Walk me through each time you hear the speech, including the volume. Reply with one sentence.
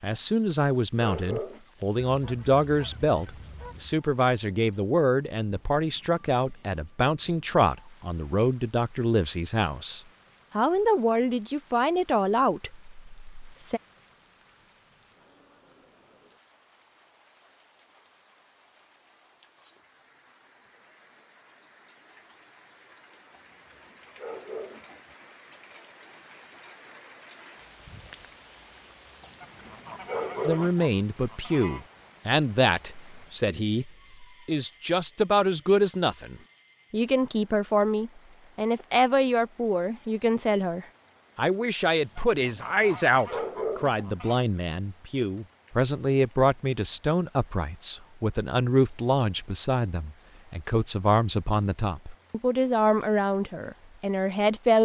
You can hear the speech from 0.0 to 13.8 s, at a steady volume; and from 30.4 to 54.7 s, at a steady volume.